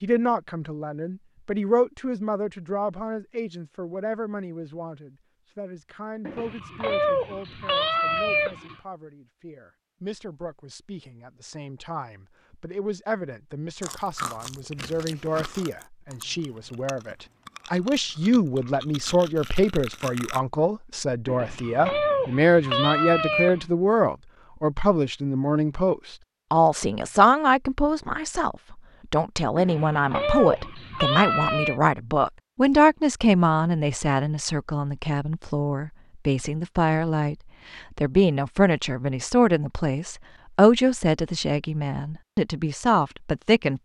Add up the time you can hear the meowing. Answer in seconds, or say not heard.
7 s.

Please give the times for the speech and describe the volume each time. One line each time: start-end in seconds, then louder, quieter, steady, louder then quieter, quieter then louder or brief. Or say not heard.
0.0-43.7 louder.